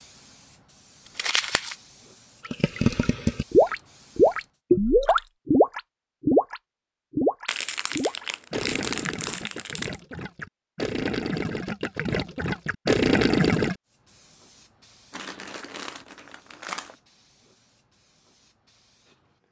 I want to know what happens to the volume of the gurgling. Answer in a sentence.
The loudness of the gurgling goes down, then up.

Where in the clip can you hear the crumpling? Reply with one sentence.
You can hear the crumpling from 1.1 to 1.8 s, from 7.5 to 10.0 s and from 15.1 to 16.9 s.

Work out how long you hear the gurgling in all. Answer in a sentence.
You can hear the gurgling for 11 seconds altogether.